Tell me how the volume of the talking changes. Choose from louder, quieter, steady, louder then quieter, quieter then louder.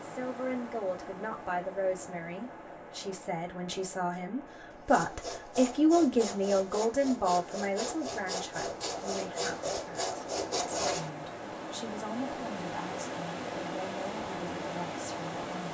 louder then quieter.